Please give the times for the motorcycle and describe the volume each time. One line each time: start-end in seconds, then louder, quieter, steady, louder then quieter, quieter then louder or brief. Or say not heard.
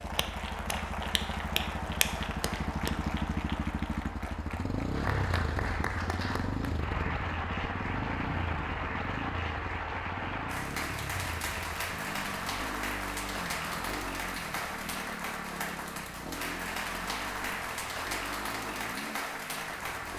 0.0-20.1 quieter.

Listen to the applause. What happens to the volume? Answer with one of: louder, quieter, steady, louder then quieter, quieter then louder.
steady.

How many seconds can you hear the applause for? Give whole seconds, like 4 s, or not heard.
20 s.